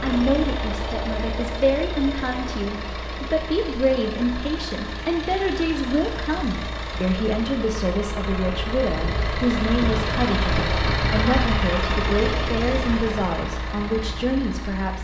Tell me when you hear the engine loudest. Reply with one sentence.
The loudest moment of the engine is at 11 seconds.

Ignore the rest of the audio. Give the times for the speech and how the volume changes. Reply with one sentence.
You can hear the speech from 0.0 to 15.0 s, at a steady volume.